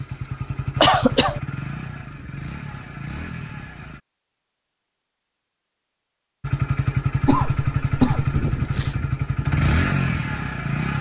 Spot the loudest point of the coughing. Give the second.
1 s.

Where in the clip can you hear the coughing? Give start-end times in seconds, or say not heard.
0.8-1.4, 7.2-8.9.